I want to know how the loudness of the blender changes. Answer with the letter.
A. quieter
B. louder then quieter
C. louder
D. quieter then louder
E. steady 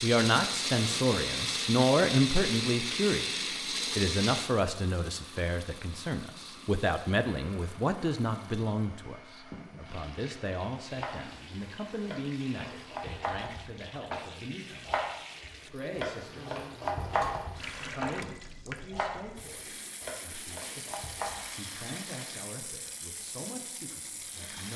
A.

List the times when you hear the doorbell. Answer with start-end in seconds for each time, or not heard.
not heard.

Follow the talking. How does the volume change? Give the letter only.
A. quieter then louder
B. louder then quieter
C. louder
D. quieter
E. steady
D.